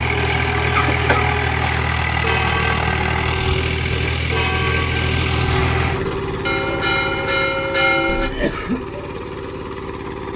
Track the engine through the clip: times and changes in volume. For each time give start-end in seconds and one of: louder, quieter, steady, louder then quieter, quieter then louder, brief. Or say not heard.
0.0-10.3 quieter.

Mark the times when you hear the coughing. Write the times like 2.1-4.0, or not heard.
0.8-1.2, 8.1-8.8.